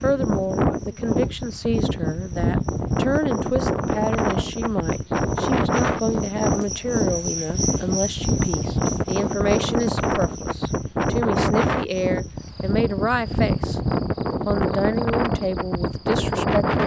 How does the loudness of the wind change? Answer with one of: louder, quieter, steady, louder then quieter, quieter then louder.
steady.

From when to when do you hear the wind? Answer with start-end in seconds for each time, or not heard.
0.0-16.8.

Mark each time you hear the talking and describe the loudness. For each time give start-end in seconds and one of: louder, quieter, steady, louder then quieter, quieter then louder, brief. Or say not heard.
0.0-16.8 steady.